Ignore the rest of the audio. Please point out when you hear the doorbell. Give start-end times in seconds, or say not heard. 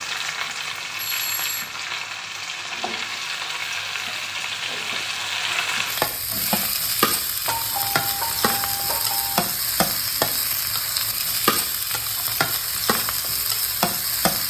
1.0-1.7, 7.5-9.4.